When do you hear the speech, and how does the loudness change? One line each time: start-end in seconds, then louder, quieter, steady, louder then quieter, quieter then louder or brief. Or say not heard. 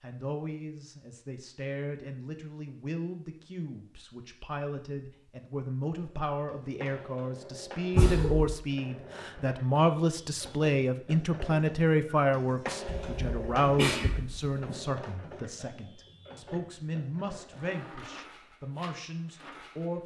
0.0-20.0 louder then quieter.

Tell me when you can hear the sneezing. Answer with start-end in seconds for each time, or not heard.
8.0-8.6, 12.8-14.8.